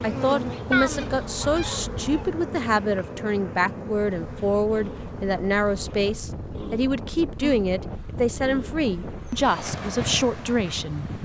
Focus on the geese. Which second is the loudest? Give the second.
1 s.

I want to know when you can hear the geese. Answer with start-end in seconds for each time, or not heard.
0.7-2.4.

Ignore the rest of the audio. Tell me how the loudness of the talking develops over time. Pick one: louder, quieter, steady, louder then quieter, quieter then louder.
steady.